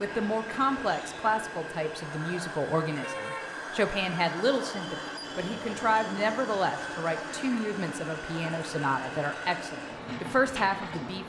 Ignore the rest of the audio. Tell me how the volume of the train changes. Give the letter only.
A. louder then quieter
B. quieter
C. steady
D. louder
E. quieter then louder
C.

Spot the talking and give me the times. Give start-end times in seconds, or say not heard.
0.0-11.2.